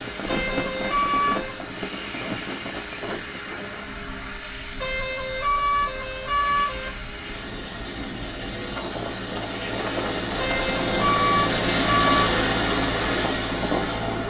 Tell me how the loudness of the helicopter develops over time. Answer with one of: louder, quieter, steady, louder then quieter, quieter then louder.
louder.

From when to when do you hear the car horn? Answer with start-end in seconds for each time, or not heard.
0.2-1.6, 4.8-7.1, 10.3-12.3.